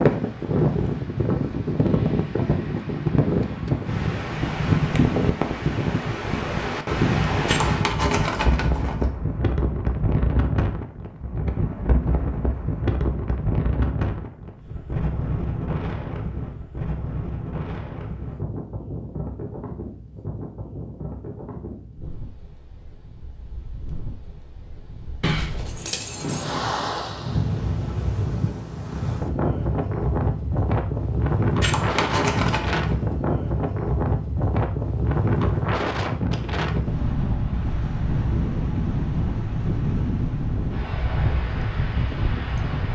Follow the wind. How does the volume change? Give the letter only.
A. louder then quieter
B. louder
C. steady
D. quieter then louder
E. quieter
D.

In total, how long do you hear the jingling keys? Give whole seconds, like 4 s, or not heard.
4 s.